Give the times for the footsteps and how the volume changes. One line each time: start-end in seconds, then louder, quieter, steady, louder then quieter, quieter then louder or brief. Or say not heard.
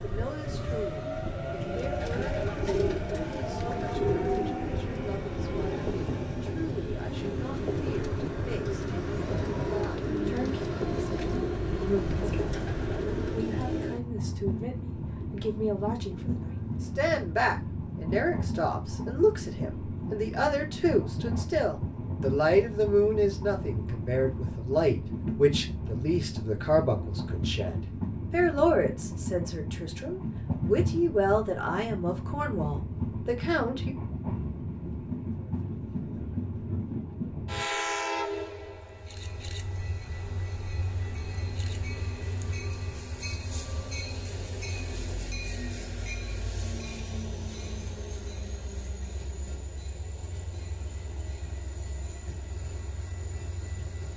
not heard.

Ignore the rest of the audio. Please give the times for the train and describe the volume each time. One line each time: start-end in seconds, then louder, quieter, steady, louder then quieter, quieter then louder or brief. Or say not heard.
0.0-54.1 quieter.